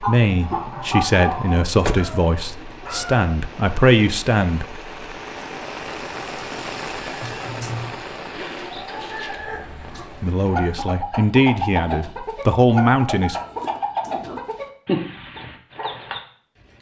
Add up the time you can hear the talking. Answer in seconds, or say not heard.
8 s.